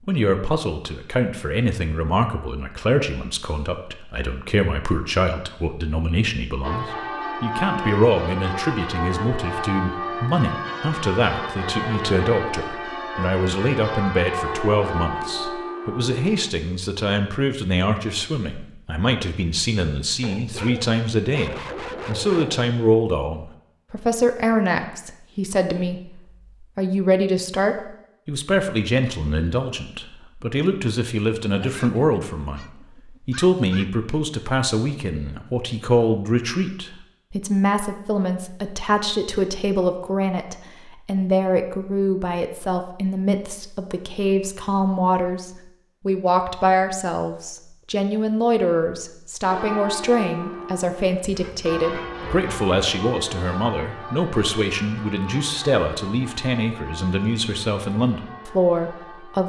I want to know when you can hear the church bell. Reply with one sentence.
The church bell can be heard from 6.6 to 16.5 s and from 49.5 to 59.4 s.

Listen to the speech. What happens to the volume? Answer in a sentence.
The volume of the speech stays about the same.